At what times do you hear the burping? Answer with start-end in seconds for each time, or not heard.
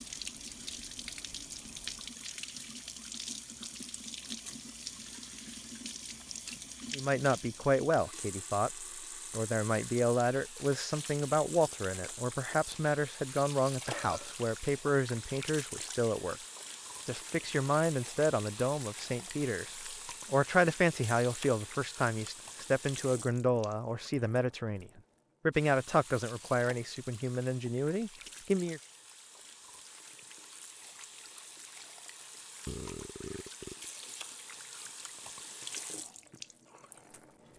13.8-14.3, 32.6-33.9.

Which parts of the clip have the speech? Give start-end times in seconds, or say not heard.
6.9-16.4, 17.1-28.8.